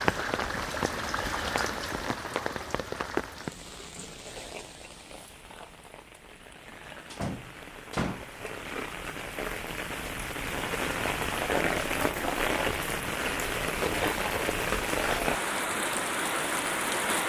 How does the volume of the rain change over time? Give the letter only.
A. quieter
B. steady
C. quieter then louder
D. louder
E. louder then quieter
C.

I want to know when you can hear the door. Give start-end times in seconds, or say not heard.
7.1-8.2.